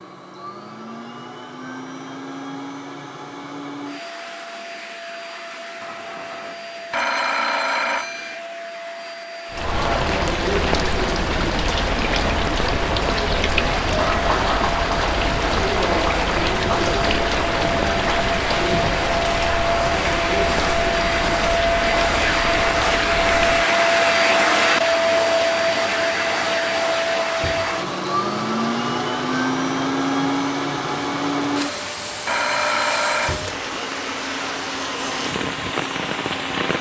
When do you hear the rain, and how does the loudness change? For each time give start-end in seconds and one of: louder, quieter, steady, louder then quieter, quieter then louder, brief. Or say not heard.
9.5-36.7 quieter.